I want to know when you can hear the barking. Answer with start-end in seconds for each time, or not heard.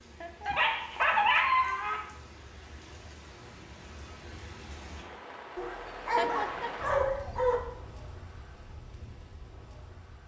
0.5-2.0, 5.5-7.6.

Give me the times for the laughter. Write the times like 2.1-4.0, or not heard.
0.2-0.7, 6.2-6.8.